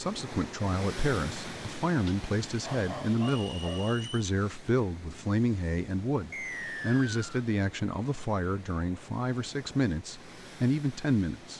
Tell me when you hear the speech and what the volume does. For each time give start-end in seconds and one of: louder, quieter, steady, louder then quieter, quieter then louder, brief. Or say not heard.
0.0-11.5 steady.